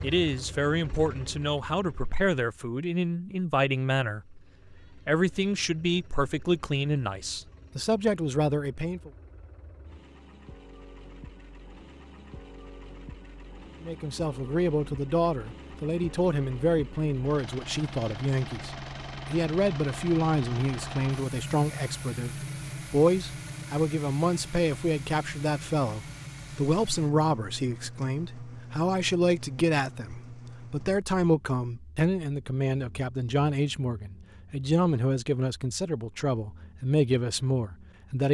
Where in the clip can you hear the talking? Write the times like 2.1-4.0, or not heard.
0.0-9.1, 13.8-38.2.